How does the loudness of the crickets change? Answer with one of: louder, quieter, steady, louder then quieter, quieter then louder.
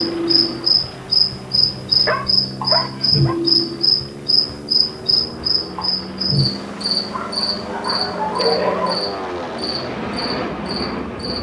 quieter.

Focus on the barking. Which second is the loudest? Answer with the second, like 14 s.
9 s.